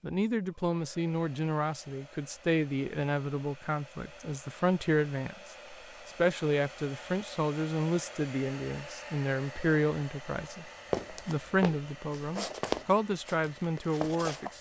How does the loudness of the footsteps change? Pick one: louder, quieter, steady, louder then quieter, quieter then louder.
quieter then louder.